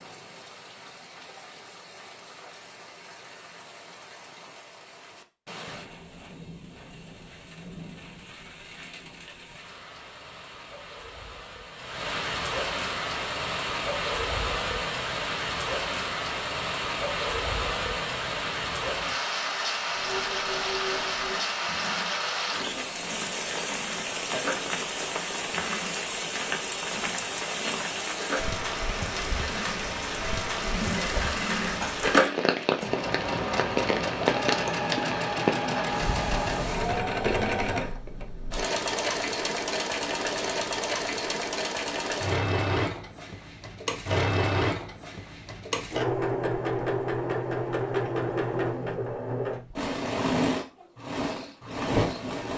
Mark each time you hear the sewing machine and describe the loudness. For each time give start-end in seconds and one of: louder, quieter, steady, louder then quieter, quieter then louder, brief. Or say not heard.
19.9-52.5 louder.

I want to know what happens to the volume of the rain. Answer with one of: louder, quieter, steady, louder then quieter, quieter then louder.
louder.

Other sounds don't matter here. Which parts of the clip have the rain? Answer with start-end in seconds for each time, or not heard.
0.0-37.0.